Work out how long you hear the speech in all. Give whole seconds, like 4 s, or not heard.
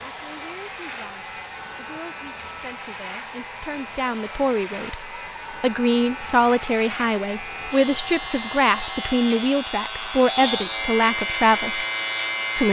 12 s.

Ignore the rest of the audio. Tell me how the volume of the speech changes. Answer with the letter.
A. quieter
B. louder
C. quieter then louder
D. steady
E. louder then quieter
B.